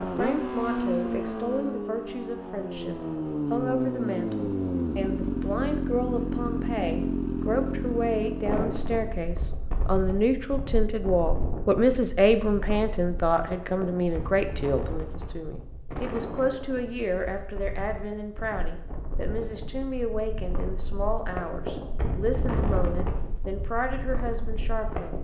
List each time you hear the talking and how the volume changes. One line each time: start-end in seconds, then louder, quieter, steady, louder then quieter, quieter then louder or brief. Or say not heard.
0.0-25.1 louder then quieter.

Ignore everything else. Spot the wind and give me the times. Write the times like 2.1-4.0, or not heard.
8.4-25.1.